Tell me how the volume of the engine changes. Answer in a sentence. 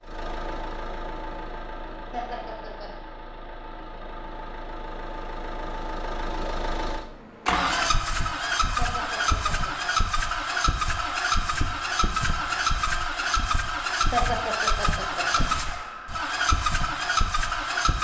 The volume of the engine goes up.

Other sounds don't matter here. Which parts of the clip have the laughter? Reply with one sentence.
The laughter can be heard from 2.1 to 2.9 s, from 8.8 to 9.7 s and from 14.1 to 15.4 s.